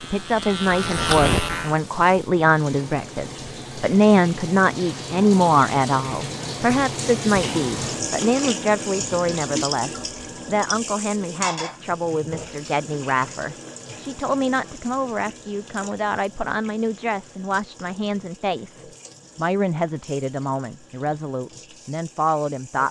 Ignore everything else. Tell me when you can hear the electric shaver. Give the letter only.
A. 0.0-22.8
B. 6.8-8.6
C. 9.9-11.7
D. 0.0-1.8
D.